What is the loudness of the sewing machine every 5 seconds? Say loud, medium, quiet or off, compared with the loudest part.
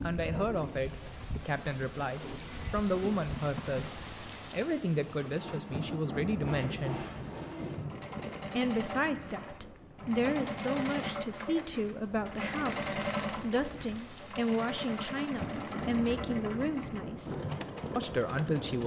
medium, medium, loud, medium.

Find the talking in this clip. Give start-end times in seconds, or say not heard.
0.0-3.9, 4.5-7.0, 8.6-17.4, 17.9-18.8.